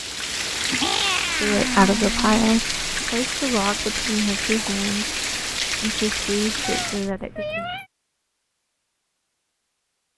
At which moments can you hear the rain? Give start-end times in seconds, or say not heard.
0.0-7.1.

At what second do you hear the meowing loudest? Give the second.
1 s.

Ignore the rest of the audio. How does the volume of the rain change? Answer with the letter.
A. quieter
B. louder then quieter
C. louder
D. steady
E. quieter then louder
D.